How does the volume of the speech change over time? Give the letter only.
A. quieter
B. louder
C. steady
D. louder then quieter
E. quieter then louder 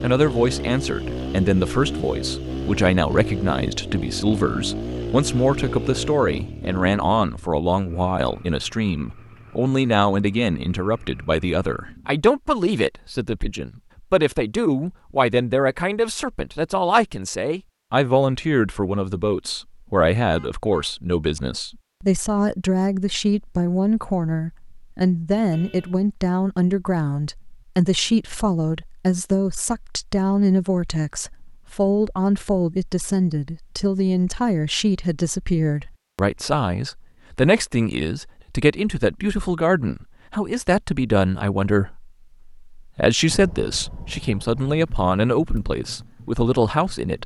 C.